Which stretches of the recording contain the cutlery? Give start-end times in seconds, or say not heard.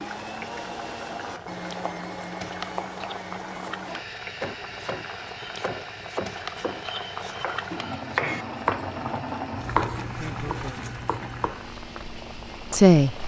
not heard.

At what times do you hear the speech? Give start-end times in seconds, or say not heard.
10.2-10.9, 12.7-13.2.